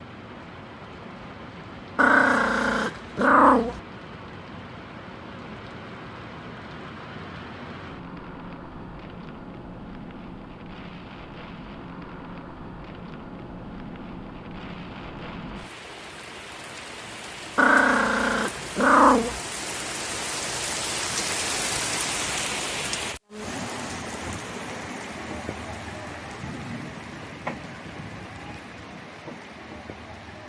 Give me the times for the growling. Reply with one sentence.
The growling can be heard from 1.9 to 3.8 s and from 17.6 to 19.4 s.